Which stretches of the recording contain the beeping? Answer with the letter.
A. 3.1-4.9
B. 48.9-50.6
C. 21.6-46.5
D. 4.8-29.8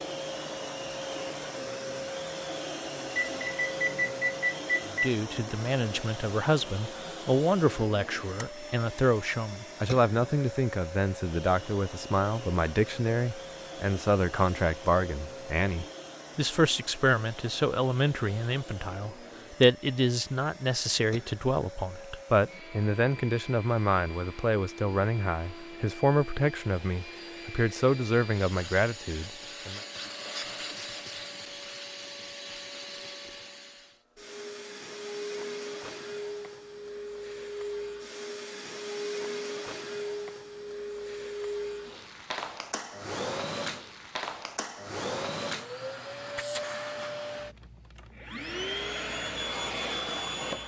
A.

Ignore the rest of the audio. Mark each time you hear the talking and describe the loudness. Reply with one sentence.
The talking can be heard from 4.8 to 29.8 s, at a steady volume.